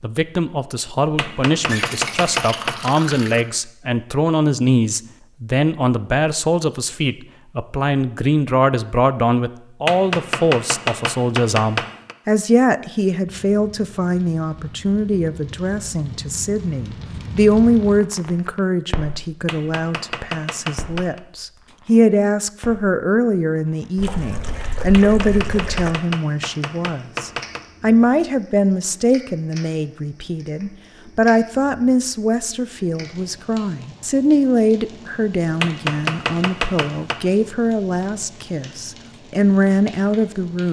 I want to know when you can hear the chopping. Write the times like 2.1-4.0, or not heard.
1.1-3.0, 9.8-12.2, 19.4-21.2, 24.9-27.6, 35.6-37.2.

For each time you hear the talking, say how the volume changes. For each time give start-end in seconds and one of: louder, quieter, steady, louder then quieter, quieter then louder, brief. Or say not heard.
0.0-40.6 steady.